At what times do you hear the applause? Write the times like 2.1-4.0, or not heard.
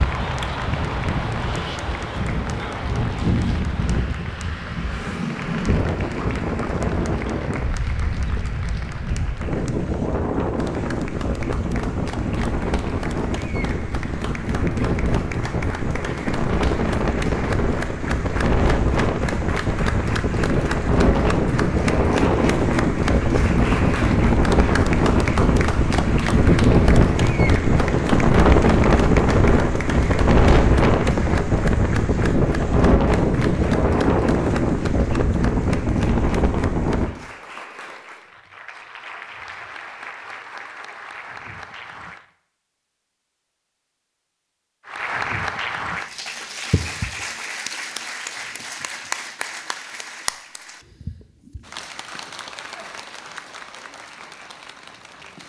0.0-42.2, 44.9-55.4.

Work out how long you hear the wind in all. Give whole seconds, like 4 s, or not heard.
37 s.